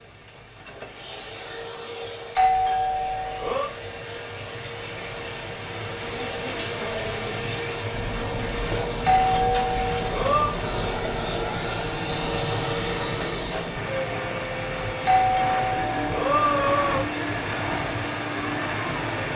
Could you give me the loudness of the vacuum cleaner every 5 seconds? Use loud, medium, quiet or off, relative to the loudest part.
medium, loud, loud, loud.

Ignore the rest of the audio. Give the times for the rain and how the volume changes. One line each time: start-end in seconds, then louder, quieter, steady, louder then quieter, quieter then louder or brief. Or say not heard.
0.0-19.3 louder.